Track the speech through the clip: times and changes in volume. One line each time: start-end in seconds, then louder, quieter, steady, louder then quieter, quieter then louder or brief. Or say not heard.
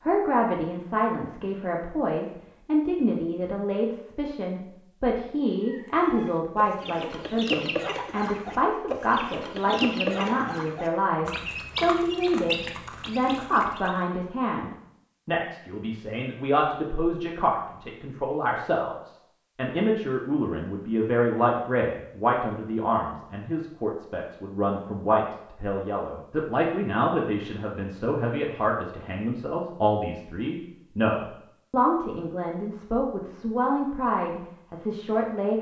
0.0-35.5 steady.